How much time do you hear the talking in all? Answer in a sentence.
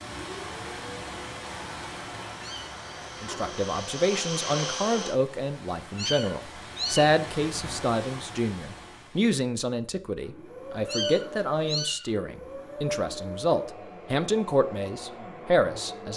The talking can be heard for 13 seconds in total.